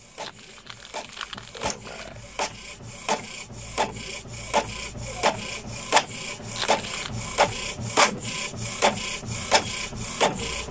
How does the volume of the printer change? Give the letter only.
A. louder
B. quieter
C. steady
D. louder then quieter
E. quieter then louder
A.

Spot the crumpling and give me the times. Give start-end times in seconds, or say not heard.
0.2-2.2, 6.5-7.2.